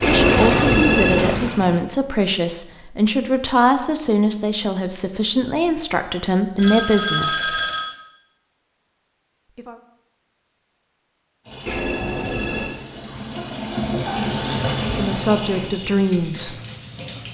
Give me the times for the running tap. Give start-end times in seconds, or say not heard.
0.0-1.9, 11.4-17.3.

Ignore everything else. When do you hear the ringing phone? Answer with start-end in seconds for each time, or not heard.
0.0-1.6, 6.5-7.9, 11.7-12.8.